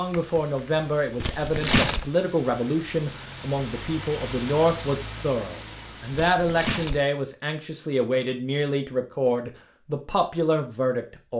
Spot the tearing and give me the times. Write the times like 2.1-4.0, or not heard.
1.2-2.0, 6.1-7.0.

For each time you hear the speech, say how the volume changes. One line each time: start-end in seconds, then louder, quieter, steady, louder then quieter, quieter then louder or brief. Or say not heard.
0.0-11.3 steady.